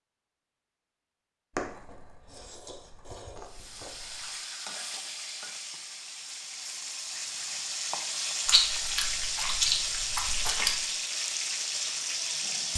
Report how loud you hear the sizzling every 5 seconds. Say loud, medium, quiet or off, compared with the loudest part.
medium, loud, loud.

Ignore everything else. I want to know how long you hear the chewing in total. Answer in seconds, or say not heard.
5 s.